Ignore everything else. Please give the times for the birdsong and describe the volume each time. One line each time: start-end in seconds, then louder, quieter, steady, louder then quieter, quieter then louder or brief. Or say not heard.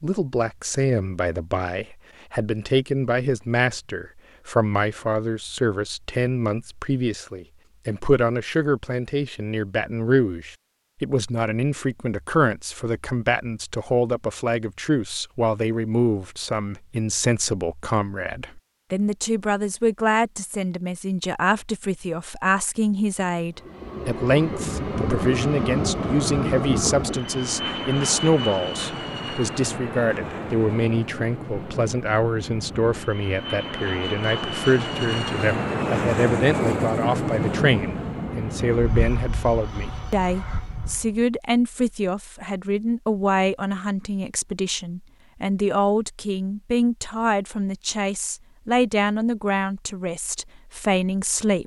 not heard.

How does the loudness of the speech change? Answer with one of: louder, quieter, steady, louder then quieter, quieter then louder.
steady.